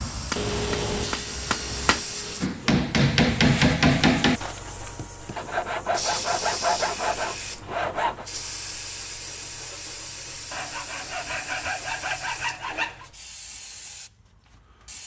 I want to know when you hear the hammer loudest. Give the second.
4 s.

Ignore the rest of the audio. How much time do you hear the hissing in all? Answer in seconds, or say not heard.
15 s.